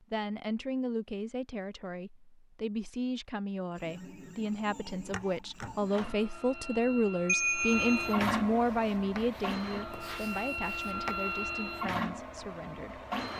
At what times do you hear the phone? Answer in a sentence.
You can hear the phone from 7.2 to 8.2 s.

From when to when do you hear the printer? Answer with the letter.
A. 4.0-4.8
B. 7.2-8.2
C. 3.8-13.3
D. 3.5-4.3
C.